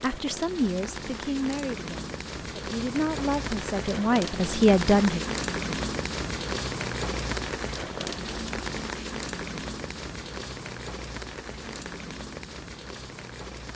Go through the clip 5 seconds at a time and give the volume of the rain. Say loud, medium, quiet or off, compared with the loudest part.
loud, loud, medium.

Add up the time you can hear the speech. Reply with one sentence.
You can hear the speech for 5 seconds altogether.